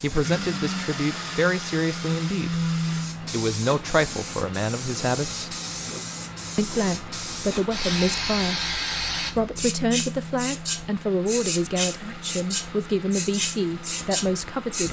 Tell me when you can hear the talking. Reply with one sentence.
The talking can be heard from 0.0 to 5.5 s and from 6.5 to 14.8 s.